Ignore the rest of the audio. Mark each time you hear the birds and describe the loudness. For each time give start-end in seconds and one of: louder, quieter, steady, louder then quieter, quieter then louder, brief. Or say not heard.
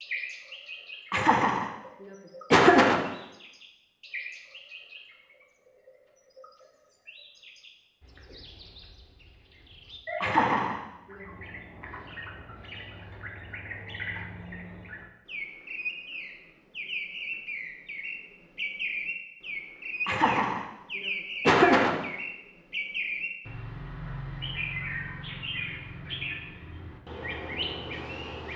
0.0-28.5 louder.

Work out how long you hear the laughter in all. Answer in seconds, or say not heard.
5 s.